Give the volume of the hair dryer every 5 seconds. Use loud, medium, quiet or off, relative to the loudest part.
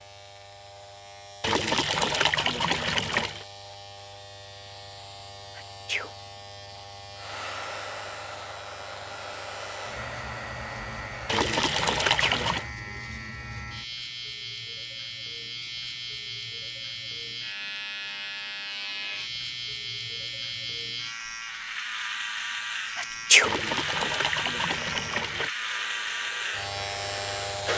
off, loud, loud, off, off, loud.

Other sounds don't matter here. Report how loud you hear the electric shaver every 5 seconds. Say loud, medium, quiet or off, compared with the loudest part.
quiet, medium, medium, loud, loud, loud.